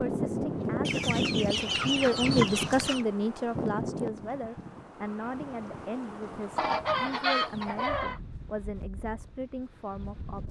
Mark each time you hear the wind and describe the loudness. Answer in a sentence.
The wind can be heard from 0.0 to 10.4 s, getting quieter.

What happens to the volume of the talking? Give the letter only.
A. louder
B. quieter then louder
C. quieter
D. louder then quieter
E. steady
C.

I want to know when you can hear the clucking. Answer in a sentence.
You can hear the clucking from 0.8 to 3.0 s and from 6.5 to 8.2 s.